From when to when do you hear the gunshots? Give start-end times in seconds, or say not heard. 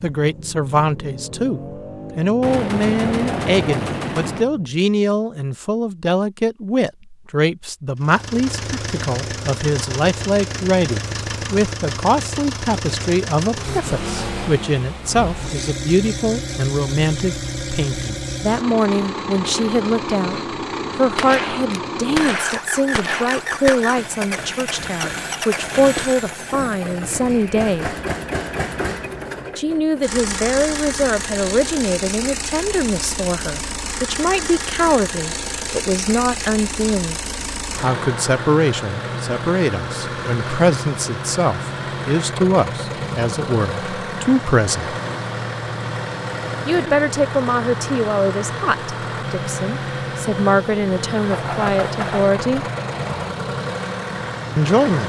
2.4-4.5, 21.1-23.9, 51.3-53.3.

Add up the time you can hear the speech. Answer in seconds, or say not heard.
49 s.